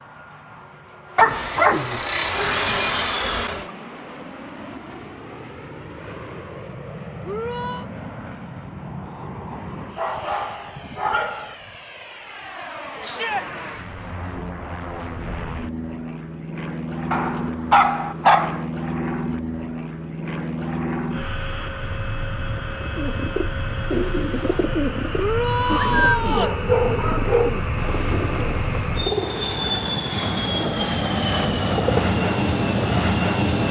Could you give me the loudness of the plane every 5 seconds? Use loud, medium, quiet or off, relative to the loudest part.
quiet, quiet, quiet, medium, medium, medium, loud.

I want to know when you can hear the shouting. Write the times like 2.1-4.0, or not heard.
7.2-7.8, 13.0-13.4, 25.1-26.6.